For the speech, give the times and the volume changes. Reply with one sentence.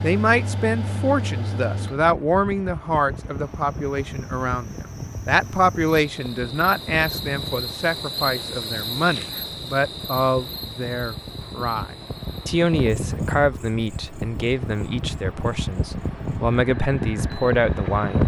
You can hear the speech from 0.0 to 18.2 s, at a steady volume.